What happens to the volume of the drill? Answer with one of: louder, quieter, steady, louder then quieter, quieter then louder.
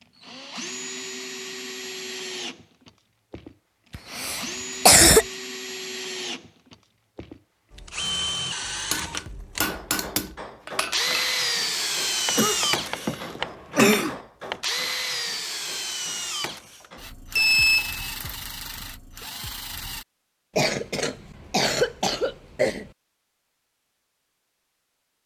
louder then quieter.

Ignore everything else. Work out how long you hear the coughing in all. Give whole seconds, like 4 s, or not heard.
5 s.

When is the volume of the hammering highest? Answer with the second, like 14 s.
10 s.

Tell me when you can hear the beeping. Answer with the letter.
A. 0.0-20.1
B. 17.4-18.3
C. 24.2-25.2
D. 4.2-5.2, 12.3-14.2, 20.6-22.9
B.